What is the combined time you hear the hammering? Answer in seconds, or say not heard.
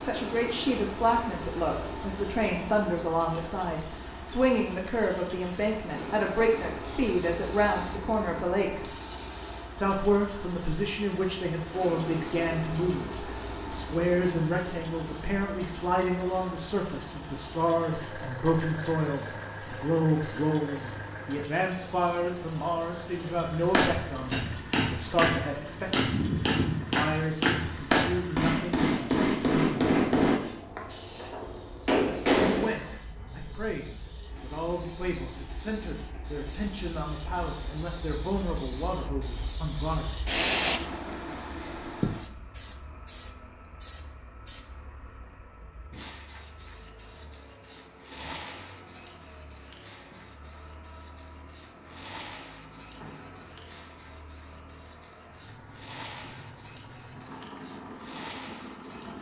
9 s.